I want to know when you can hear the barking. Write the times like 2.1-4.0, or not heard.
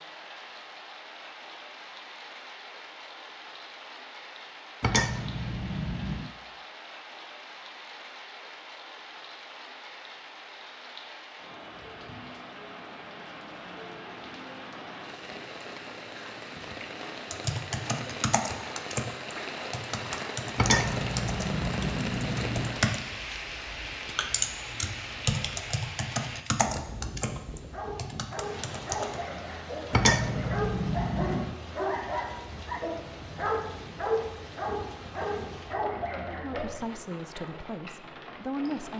27.6-36.9.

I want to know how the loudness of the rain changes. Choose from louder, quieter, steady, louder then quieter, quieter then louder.
louder then quieter.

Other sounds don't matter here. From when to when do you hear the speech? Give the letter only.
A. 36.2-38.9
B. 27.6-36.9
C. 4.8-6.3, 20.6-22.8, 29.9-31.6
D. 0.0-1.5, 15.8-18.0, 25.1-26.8
A.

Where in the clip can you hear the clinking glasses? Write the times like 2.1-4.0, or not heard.
4.8-6.3, 20.6-22.8, 29.9-31.6.